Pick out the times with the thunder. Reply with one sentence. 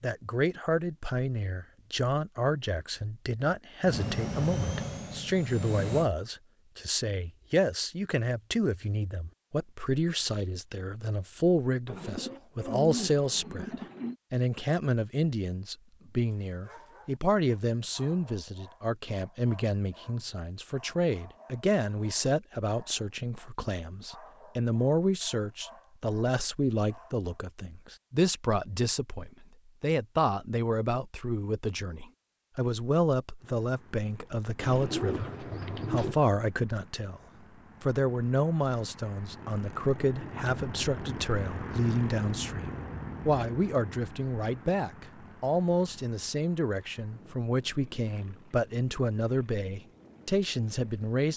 You can't hear the thunder here.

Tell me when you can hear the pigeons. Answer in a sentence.
You can hear the pigeons from 11.8 to 14.2 s and from 34.6 to 36.2 s.